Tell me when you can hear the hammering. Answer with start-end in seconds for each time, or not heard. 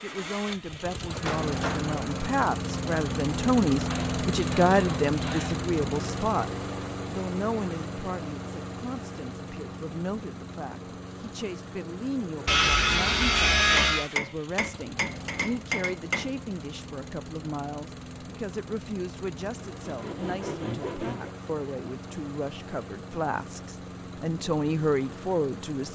1.1-2.0, 13.6-16.4.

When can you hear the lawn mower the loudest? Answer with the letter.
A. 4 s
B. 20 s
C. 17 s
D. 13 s
A.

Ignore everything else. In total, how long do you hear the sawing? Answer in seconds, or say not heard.
5 s.